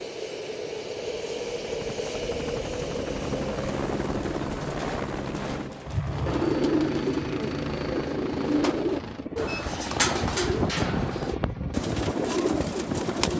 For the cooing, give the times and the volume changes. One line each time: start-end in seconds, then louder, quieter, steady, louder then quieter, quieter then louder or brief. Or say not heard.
6.0-13.3 steady.